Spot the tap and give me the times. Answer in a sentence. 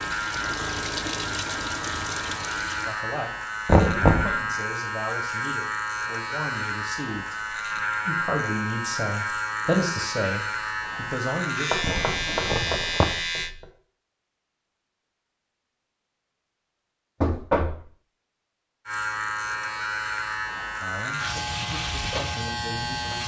The tap can be heard from 0.0 to 3.0 s.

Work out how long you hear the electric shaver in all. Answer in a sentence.
The electric shaver can be heard for 18 seconds in total.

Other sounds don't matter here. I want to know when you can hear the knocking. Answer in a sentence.
The knocking can be heard from 3.6 to 4.3 s, from 11.7 to 13.7 s and from 17.2 to 17.9 s.